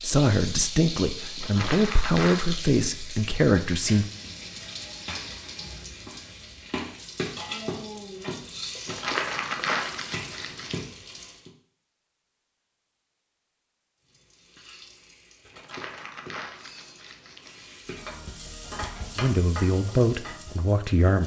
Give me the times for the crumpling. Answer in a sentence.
The crumpling can be heard from 1.4 to 2.5 s, from 8.8 to 10.8 s and from 15.5 to 17.8 s.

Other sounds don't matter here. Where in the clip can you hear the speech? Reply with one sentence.
You can hear the speech from 0.0 to 4.0 s and from 19.1 to 21.2 s.